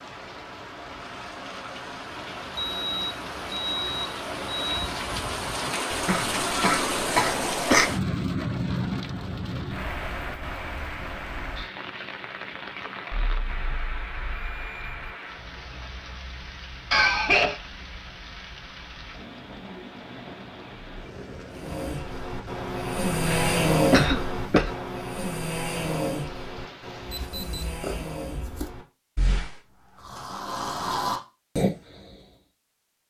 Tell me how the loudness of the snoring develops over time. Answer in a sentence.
The volume of the snoring goes down, then up.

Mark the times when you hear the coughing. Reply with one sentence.
The coughing can be heard from 5.9 to 7.9 s, from 16.9 to 17.6 s and from 23.2 to 24.7 s.